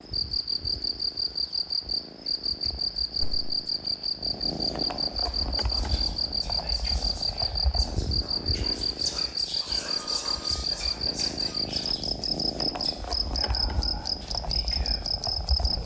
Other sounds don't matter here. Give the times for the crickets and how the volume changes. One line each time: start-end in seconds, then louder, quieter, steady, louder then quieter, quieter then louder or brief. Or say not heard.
0.0-15.8 steady.